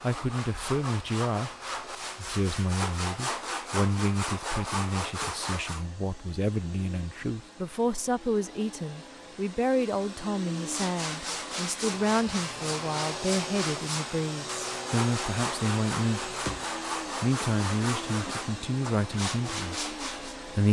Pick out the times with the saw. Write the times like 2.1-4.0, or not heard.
0.0-5.8, 10.6-20.4.